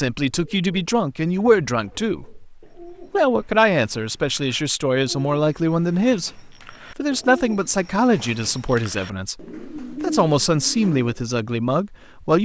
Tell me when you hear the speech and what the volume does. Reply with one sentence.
The speech can be heard from 0.0 to 12.4 s, at a steady volume.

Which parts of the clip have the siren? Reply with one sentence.
You can't hear the siren here.